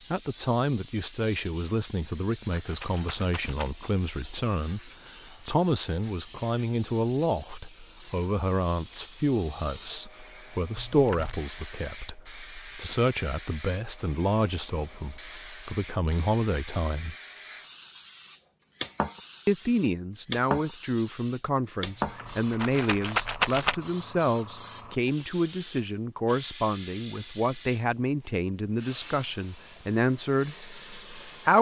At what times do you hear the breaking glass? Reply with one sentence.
The breaking glass can't be heard in this clip.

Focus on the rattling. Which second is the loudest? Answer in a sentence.
The volume of the rattling peaks at 23 seconds.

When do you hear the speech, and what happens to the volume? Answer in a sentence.
The speech can be heard from 0.1 to 17.1 s, at a steady volume; and from 19.4 to 31.5 s, at a steady volume.